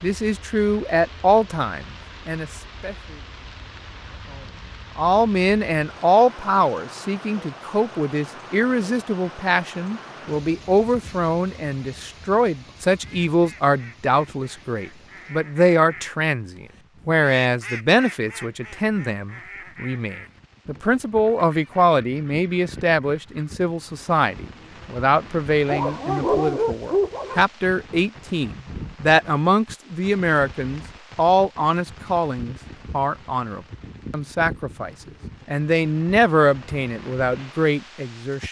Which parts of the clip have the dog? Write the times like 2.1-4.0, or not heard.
25.6-27.4.